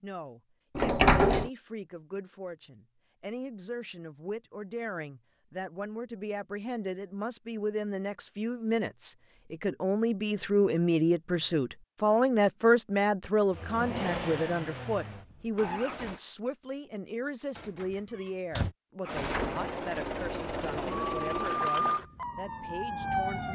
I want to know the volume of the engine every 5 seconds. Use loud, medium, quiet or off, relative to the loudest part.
off, off, loud, loud, loud.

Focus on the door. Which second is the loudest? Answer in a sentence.
The volume of the door peaks at 1 second.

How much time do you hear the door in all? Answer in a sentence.
You can hear the door for 2 seconds altogether.